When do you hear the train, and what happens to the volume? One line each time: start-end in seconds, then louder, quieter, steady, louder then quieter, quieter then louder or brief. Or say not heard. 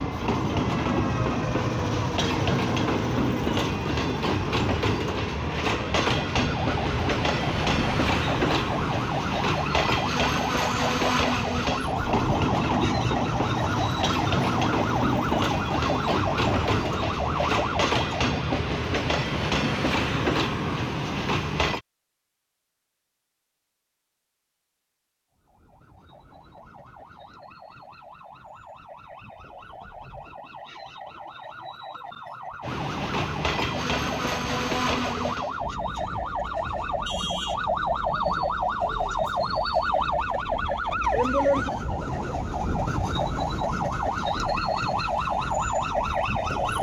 0.0-21.8 steady
32.6-46.7 quieter.